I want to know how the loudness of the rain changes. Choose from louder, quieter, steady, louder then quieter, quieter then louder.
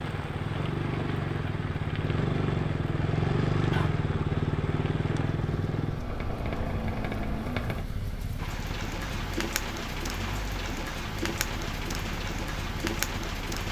louder.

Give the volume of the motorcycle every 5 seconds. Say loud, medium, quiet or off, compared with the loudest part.
loud, medium, quiet.